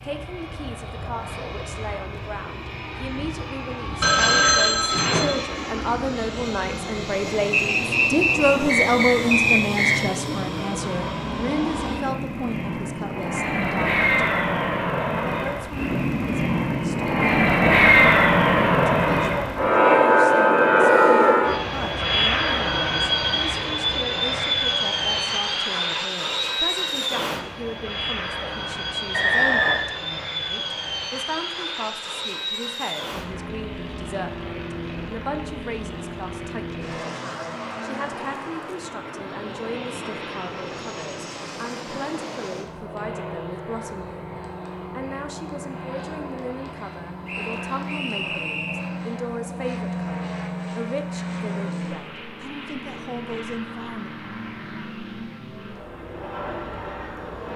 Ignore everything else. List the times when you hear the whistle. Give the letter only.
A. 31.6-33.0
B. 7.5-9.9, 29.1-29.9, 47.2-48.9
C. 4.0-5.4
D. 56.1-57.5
B.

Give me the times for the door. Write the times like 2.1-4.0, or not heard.
not heard.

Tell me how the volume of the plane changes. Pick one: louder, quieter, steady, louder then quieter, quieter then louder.
louder then quieter.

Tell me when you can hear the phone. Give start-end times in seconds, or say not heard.
4.0-5.4.